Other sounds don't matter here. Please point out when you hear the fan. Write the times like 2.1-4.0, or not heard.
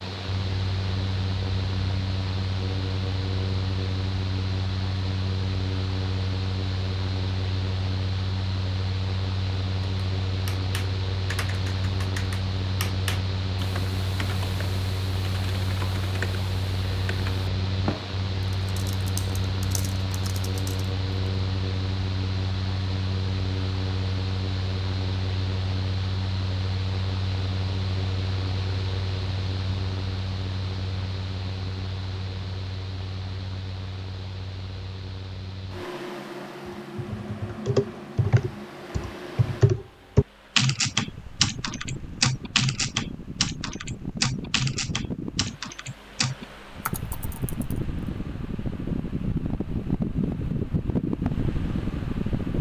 0.0-52.5.